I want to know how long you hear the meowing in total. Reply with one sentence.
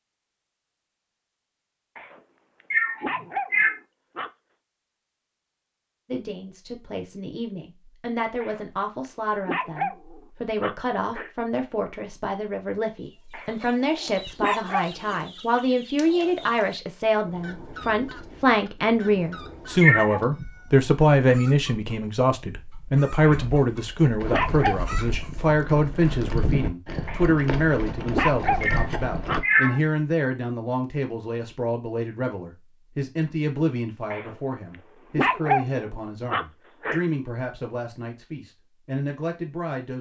The meowing can be heard for 3 seconds in total.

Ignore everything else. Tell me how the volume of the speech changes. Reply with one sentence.
The volume of the speech goes up, then down.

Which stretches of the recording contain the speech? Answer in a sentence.
You can hear the speech from 6.0 to 39.9 s.